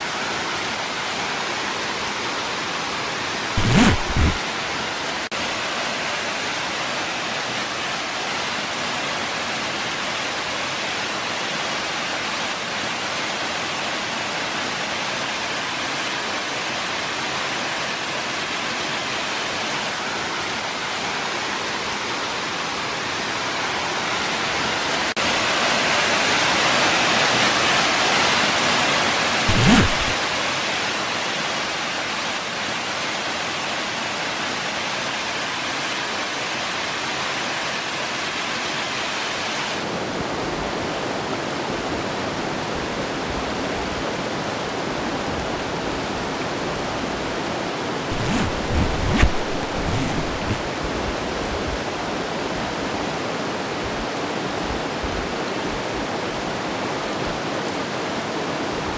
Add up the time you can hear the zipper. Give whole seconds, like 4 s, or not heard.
4 s.